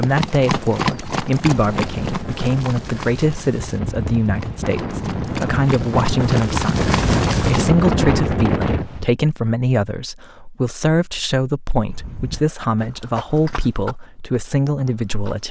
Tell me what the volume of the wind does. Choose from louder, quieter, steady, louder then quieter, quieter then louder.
louder.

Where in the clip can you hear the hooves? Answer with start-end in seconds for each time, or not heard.
0.0-7.8, 11.8-15.3.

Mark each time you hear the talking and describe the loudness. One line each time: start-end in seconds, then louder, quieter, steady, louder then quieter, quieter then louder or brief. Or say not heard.
0.0-15.4 steady.